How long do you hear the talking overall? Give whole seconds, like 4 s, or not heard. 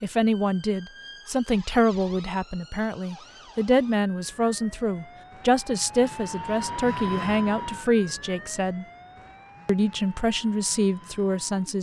11 s.